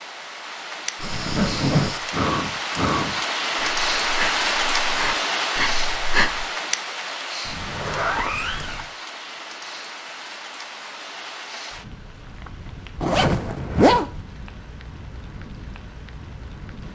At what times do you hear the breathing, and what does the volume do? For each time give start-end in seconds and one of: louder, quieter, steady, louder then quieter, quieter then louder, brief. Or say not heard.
1.0-6.5 quieter then louder.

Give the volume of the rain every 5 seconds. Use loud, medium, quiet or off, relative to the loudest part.
loud, loud, quiet, quiet.